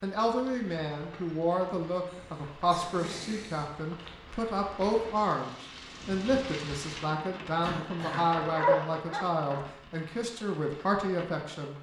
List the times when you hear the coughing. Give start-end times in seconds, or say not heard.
2.0-3.9, 7.6-8.2.